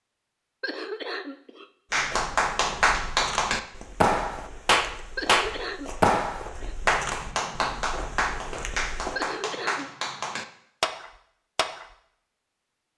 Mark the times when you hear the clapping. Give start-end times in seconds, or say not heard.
1.9-11.8.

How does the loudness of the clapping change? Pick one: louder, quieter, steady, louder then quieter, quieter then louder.
quieter.